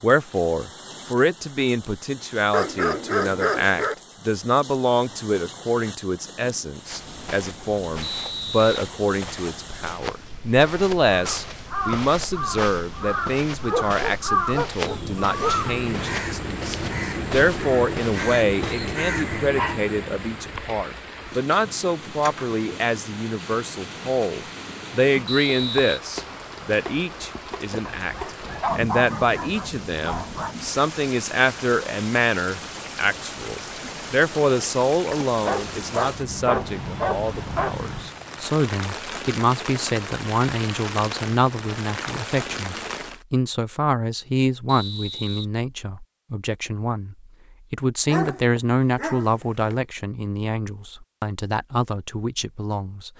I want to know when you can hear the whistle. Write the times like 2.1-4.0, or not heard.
8.0-8.8, 25.2-26.0, 44.6-45.5.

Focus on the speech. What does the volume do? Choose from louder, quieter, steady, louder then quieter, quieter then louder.
steady.